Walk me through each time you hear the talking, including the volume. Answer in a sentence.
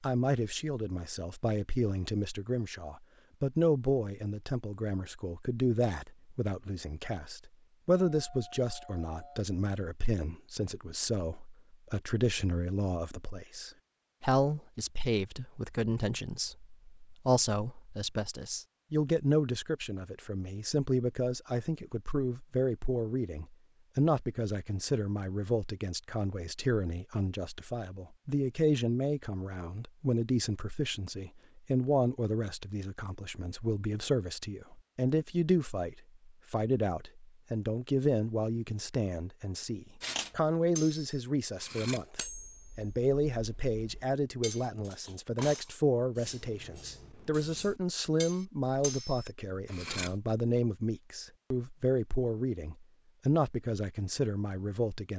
The talking can be heard from 0.0 to 55.1 s, at a steady volume.